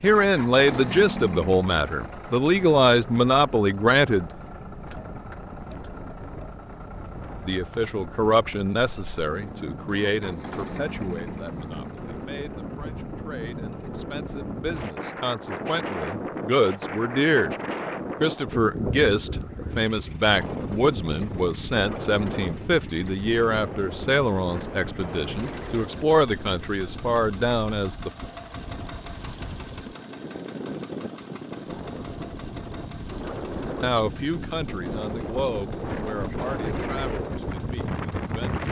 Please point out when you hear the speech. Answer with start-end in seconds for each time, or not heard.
0.0-4.3, 7.5-17.6, 18.2-28.1, 33.8-38.6.